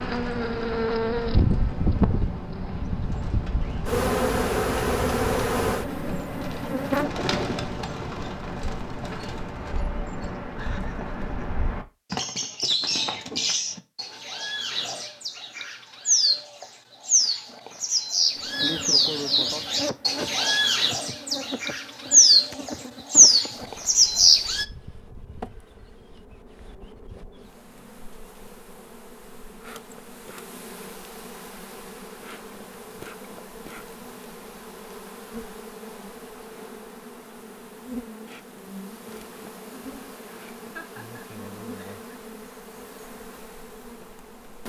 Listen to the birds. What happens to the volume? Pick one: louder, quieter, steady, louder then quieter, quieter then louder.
louder.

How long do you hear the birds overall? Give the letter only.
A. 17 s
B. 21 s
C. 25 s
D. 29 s
C.